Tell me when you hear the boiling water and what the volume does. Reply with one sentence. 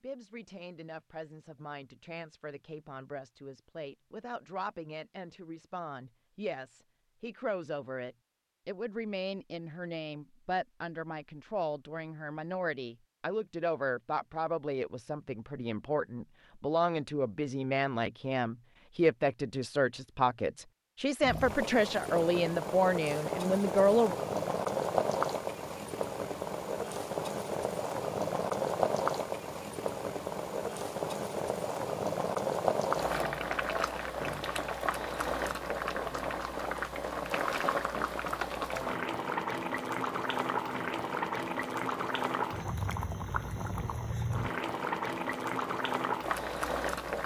You can hear the boiling water from 21.2 to 47.2 s, at a steady volume.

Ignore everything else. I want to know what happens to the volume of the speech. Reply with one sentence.
The volume of the speech goes up.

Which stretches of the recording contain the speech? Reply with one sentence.
You can hear the speech from 0.0 to 24.1 s.